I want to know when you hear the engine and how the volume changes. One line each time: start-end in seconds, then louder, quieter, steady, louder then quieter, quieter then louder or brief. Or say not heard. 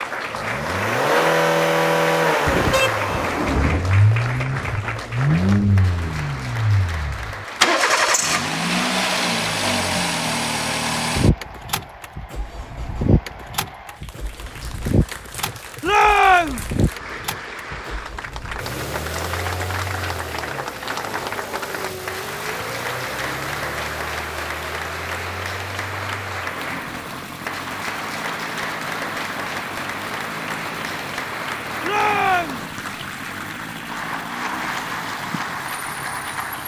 0.0-36.6 quieter.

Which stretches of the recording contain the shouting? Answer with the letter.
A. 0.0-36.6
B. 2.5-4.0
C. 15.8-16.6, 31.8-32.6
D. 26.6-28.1
C.